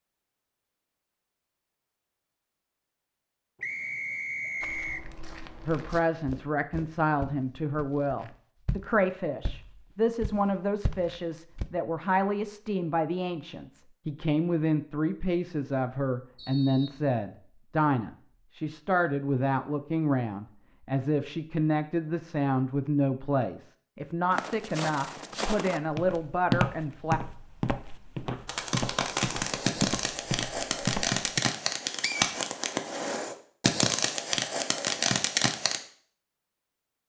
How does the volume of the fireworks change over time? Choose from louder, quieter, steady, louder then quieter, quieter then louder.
steady.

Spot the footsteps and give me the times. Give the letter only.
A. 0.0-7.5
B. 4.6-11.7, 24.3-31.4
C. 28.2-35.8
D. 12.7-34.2
B.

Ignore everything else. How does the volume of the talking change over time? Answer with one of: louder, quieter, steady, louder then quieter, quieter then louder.
steady.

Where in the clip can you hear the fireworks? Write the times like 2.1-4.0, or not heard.
28.2-35.8.